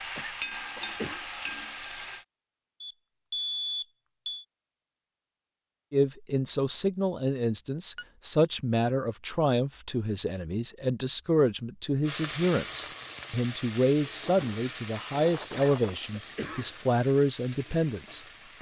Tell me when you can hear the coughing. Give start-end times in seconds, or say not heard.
0.1-1.2, 15.5-16.8.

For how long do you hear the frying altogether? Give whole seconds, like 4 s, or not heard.
9 s.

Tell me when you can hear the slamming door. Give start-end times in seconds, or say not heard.
not heard.